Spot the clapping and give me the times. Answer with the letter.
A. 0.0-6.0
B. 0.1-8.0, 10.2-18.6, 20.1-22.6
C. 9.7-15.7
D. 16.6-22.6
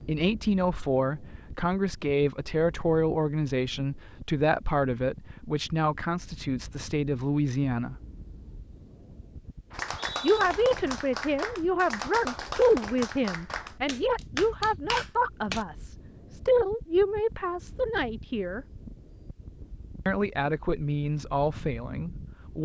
C.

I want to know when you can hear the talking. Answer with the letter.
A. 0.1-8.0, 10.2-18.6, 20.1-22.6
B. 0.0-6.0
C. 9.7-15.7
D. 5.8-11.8
A.